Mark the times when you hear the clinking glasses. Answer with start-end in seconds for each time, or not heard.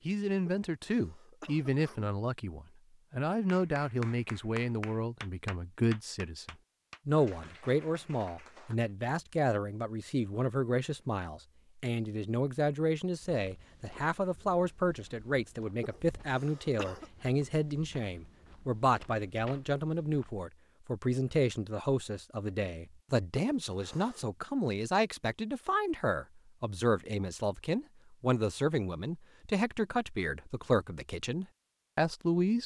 not heard.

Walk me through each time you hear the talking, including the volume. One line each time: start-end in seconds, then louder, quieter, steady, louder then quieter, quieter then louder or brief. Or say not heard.
0.1-32.6 steady.